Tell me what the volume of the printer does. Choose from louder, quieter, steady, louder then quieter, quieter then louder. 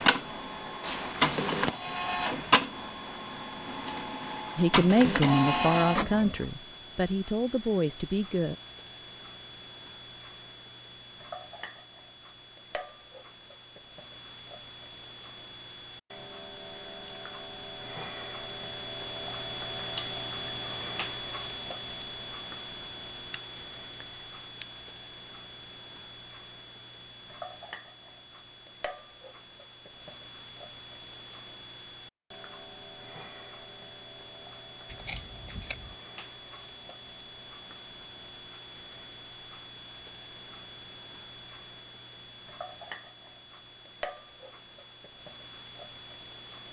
quieter then louder.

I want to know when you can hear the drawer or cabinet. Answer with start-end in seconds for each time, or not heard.
not heard.